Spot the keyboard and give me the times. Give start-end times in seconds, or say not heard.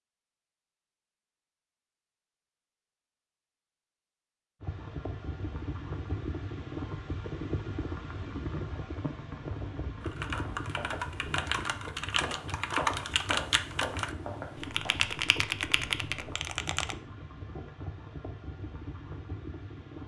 10.0-16.9.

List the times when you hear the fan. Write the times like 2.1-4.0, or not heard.
4.6-20.0.